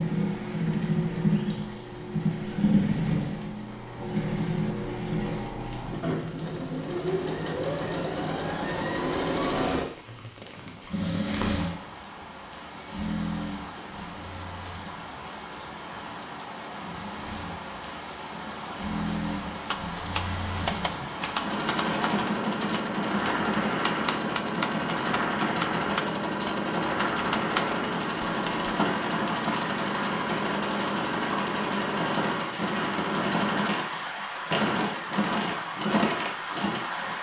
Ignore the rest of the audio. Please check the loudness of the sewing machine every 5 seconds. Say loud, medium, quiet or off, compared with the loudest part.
loud, loud, medium, medium, loud, loud, loud, loud.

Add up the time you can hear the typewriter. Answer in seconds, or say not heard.
9 s.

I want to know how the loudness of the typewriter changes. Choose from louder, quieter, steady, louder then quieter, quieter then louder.
quieter then louder.